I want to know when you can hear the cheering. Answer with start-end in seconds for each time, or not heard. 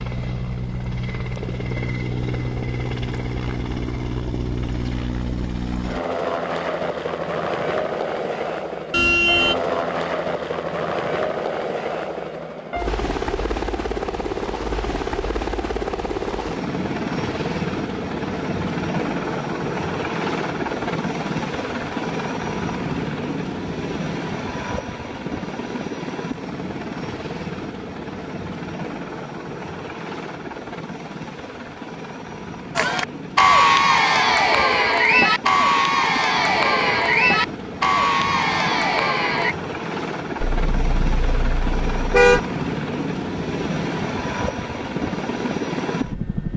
32.8-39.5.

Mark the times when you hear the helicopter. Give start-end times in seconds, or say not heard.
0.0-46.5.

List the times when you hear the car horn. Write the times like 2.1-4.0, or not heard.
8.9-9.6, 40.5-42.4.